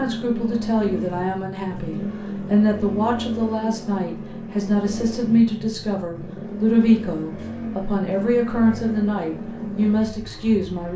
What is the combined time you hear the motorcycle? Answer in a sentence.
The motorcycle can be heard for 11 seconds in total.